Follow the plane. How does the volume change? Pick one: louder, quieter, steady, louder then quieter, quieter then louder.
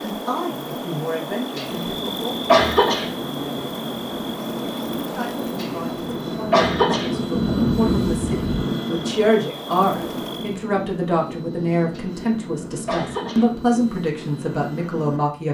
louder then quieter.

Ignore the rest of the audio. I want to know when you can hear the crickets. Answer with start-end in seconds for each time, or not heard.
0.0-10.6.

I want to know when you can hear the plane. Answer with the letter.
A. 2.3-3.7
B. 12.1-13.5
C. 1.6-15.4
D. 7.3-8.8
C.